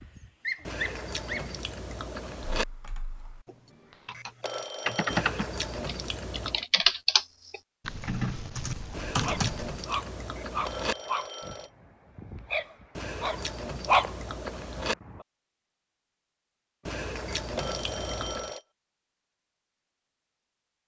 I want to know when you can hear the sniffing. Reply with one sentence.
You can't hear the sniffing here.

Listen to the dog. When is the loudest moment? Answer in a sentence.
The loudest moment of the dog is at 14 seconds.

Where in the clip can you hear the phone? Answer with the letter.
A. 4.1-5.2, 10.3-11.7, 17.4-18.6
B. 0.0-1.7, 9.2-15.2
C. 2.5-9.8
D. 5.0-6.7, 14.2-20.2
A.